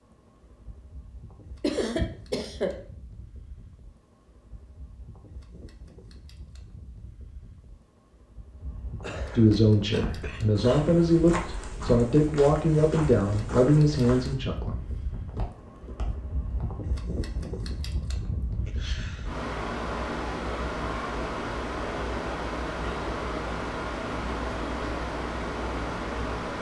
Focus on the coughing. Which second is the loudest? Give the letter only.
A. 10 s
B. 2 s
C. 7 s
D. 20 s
B.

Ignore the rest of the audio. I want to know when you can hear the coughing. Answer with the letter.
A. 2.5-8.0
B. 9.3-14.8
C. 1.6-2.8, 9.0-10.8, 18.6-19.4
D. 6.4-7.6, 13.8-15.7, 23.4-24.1
C.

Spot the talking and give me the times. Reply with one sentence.
The talking can be heard from 9.3 to 14.8 s.